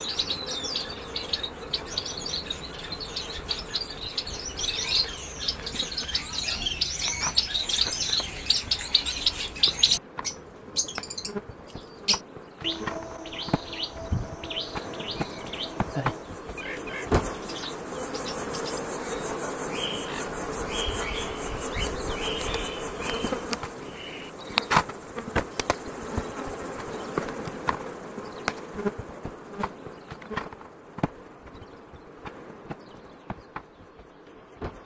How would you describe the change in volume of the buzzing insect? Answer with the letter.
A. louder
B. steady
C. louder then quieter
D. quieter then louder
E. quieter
C.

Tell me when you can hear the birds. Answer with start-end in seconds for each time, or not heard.
0.0-24.7.